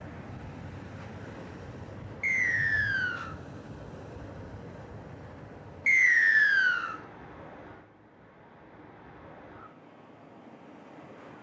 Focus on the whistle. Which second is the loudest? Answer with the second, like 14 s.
6 s.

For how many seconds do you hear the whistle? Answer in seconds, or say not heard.
2 s.